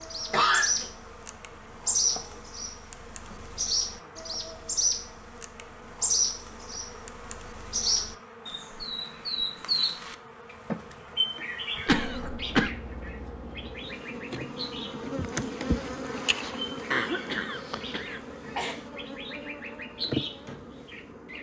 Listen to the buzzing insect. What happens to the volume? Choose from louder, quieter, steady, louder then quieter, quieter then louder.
louder.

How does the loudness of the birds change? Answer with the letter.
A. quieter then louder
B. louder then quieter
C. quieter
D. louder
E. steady
C.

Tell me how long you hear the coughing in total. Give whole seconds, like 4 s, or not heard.
3 s.